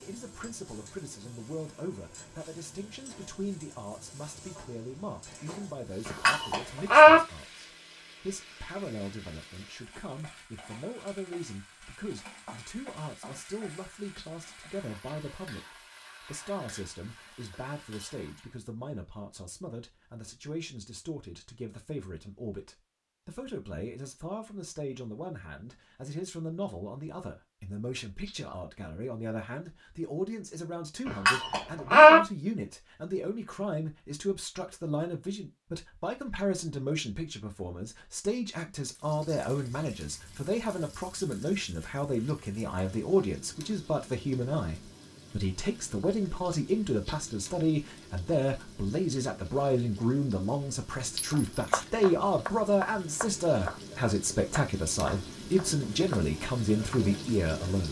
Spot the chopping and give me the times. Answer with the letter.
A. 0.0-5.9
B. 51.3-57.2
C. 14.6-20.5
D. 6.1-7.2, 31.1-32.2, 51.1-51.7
B.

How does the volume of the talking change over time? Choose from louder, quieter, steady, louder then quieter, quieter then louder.
louder.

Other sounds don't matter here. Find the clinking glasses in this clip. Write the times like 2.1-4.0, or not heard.
6.1-7.2, 31.1-32.2, 51.1-51.7.